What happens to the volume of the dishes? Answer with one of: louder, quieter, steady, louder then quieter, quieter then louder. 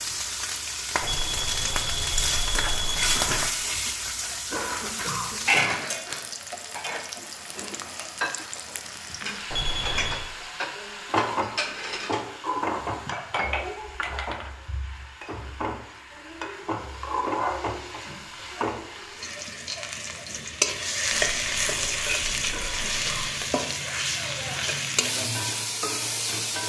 louder.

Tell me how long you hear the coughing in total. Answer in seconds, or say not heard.
2 s.